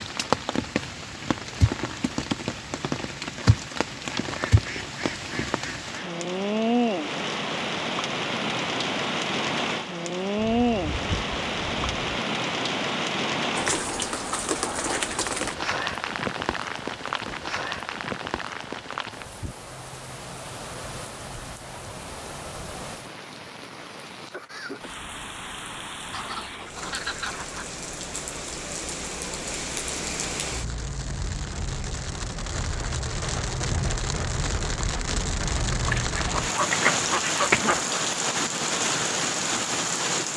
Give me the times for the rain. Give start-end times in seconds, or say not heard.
0.0-40.3.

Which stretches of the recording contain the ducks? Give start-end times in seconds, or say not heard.
4.0-6.1, 10.3-12.1, 26.1-27.6, 35.9-38.0.